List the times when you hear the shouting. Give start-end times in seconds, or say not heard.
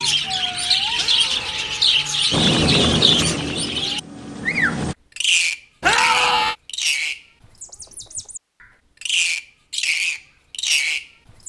0.9-2.5, 5.8-6.5.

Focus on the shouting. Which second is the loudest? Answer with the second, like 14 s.
6 s.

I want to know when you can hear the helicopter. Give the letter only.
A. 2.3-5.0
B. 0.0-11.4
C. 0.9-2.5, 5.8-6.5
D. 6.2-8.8
A.